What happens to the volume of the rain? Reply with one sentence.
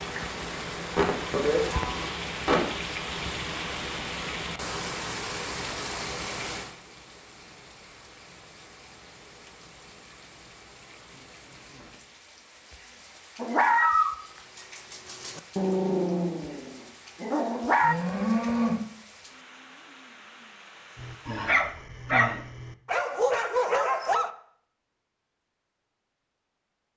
The volume of the rain goes down.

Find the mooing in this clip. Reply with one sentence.
The mooing can be heard from 0.9 to 2.6 s and from 17.8 to 18.8 s.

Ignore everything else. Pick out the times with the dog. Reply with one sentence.
You can hear the dog from 13.3 to 17.9 s and from 20.9 to 24.3 s.